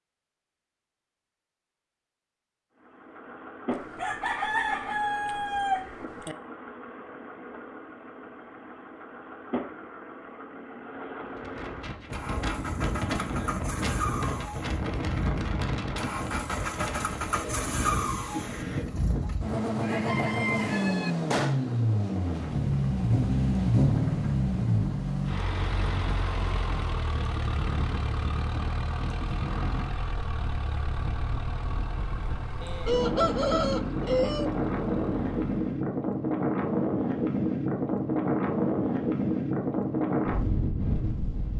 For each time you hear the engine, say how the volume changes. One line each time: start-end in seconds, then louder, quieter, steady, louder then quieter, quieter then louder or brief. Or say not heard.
2.8-35.9 louder then quieter.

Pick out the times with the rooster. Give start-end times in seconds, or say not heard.
3.7-6.3, 19.8-21.1, 32.6-34.5.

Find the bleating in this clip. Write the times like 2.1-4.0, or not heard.
not heard.